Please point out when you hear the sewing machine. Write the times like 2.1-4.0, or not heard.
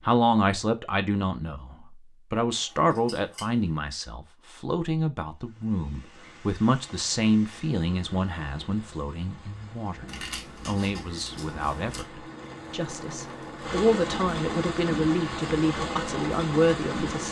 11.2-13.8.